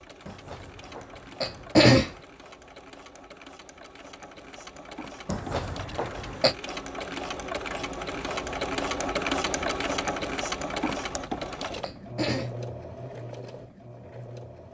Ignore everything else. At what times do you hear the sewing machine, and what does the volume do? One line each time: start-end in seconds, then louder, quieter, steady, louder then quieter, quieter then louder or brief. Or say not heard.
0.0-14.6 louder then quieter.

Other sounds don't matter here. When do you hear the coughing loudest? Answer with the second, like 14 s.
2 s.